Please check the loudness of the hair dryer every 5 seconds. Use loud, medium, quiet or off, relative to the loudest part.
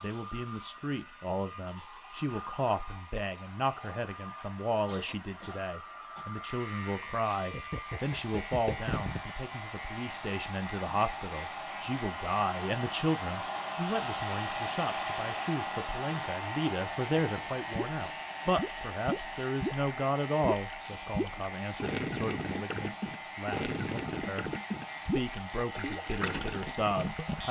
medium, medium, loud, loud, medium, medium.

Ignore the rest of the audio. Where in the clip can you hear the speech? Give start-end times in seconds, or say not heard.
0.0-27.4.